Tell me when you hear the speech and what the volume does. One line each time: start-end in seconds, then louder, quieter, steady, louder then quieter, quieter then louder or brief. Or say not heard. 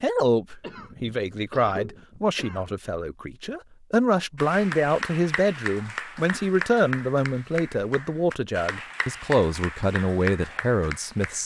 0.0-11.4 steady.